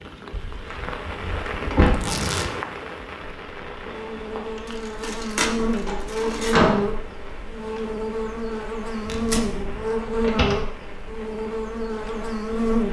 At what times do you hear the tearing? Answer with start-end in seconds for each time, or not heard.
1.9-2.5, 4.7-6.6, 9.1-9.5.